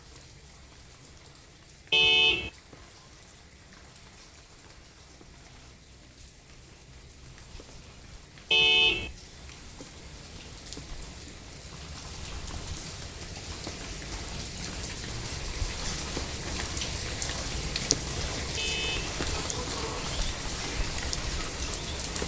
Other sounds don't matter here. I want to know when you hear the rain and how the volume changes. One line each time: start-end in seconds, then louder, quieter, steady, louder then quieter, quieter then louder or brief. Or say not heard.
0.0-22.2 louder.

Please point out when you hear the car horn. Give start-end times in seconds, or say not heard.
1.9-2.5, 8.5-9.1, 18.6-19.1.